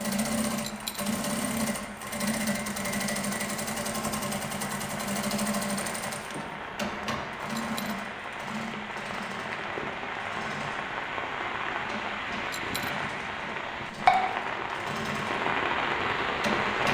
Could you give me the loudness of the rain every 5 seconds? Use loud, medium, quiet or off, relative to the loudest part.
quiet, medium, loud, loud.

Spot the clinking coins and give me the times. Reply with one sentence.
You can hear the clinking coins from 0.6 to 1.1 s, from 7.5 to 8.0 s and from 12.4 to 12.9 s.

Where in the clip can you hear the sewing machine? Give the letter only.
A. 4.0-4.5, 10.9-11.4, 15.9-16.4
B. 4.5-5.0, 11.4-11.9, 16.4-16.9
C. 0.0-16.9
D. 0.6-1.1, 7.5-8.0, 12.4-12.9
C.